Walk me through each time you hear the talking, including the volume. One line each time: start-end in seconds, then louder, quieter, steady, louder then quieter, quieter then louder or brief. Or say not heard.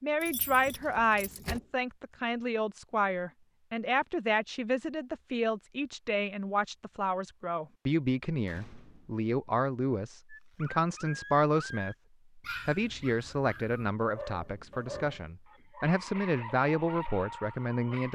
0.0-18.1 steady.